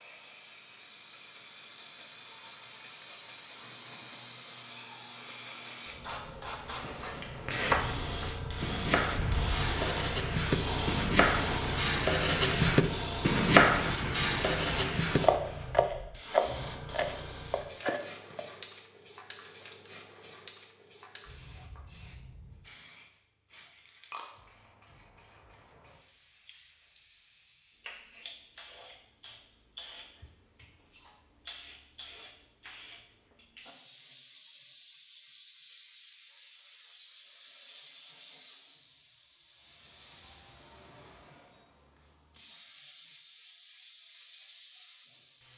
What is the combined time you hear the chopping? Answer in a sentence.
The chopping can be heard for 11 seconds in total.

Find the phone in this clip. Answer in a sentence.
You can't hear the phone here.